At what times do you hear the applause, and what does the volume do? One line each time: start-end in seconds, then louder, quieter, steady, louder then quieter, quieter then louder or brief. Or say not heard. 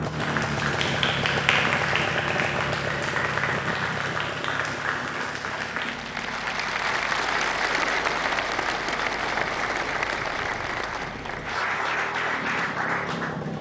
0.0-13.5 steady.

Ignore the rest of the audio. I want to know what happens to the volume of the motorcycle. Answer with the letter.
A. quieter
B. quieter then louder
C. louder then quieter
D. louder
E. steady
B.